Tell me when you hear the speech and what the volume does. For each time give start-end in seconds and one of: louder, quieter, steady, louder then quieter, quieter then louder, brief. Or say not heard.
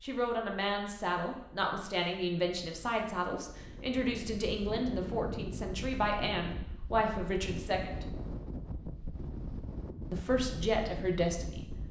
0.0-8.1 steady
10.1-11.7 brief.